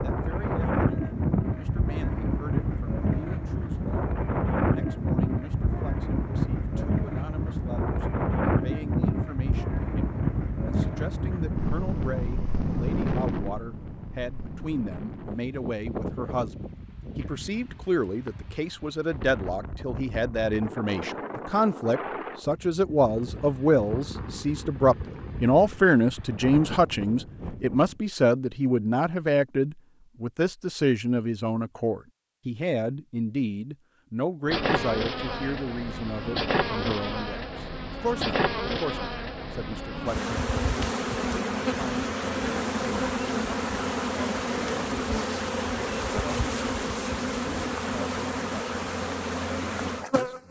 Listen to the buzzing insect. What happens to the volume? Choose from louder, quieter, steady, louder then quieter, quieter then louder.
steady.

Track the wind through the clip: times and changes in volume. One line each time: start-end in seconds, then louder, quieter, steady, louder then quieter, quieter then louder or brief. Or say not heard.
0.0-28.0 quieter.